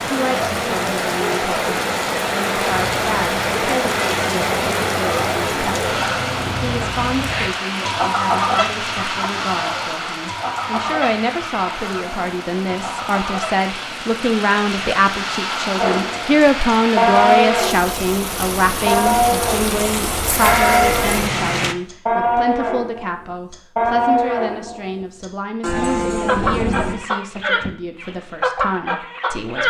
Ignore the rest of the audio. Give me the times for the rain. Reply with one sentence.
You can hear the rain from 0.0 to 21.8 s.